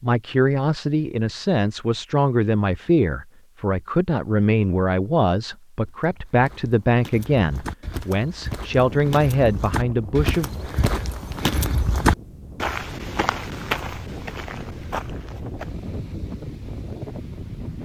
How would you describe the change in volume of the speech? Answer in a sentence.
The volume of the speech stays about the same.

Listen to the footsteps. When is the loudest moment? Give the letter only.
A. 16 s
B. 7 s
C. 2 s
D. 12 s
D.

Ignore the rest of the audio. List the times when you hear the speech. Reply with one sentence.
You can hear the speech from 0.0 to 10.5 s.